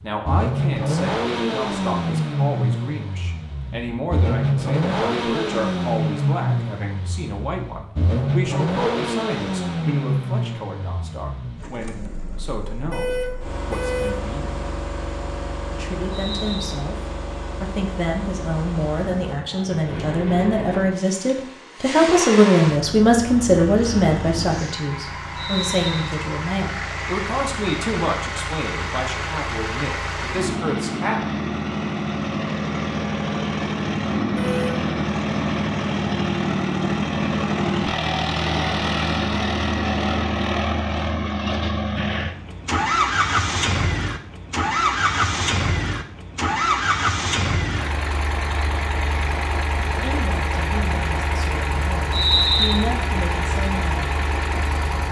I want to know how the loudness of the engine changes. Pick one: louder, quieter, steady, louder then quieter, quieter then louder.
quieter then louder.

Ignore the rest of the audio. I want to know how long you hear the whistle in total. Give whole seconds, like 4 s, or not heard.
2 s.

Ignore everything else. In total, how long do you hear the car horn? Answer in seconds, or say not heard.
2 s.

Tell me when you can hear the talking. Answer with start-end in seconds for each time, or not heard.
0.0-14.7, 15.7-17.0, 17.6-31.2, 49.9-54.1.